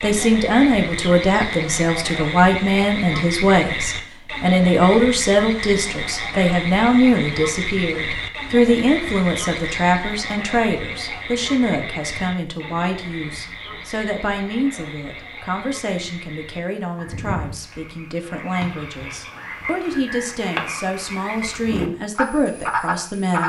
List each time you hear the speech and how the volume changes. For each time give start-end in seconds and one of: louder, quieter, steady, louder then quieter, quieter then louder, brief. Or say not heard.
0.0-23.4 quieter.